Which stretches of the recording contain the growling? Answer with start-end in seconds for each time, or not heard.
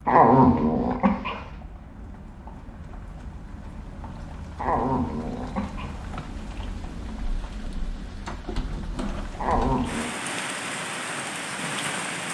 0.1-1.4, 4.5-6.0, 9.3-10.2.